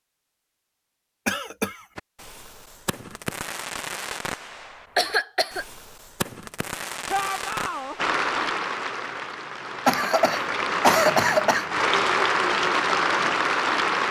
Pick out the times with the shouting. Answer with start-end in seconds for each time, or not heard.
7.0-8.0.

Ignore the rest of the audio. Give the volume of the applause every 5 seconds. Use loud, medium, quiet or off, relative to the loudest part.
off, medium, loud.